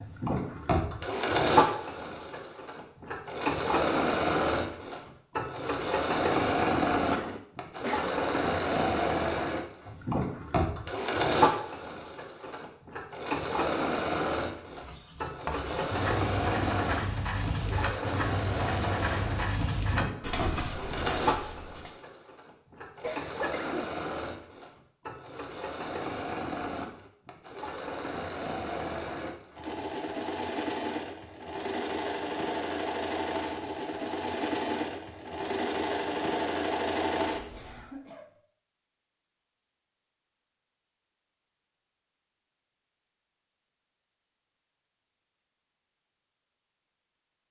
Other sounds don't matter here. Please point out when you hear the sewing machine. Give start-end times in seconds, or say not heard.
0.0-37.9.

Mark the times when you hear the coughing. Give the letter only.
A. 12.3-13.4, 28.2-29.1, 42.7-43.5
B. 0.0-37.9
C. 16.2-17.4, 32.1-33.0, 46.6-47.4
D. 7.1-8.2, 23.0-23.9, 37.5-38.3
D.